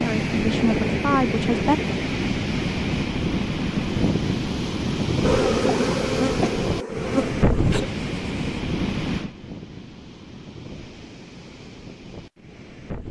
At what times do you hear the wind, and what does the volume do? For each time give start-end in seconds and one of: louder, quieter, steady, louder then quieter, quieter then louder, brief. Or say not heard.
0.0-13.0 quieter.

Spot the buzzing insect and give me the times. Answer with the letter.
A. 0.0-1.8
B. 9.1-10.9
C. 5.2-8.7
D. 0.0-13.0
C.